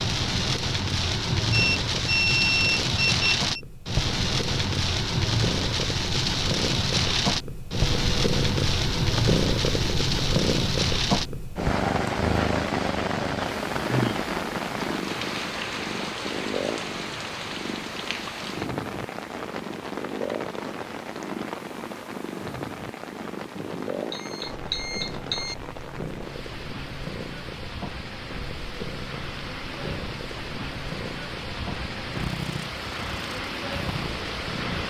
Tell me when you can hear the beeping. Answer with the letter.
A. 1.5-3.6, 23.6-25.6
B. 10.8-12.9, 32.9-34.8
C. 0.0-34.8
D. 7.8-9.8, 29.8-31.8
A.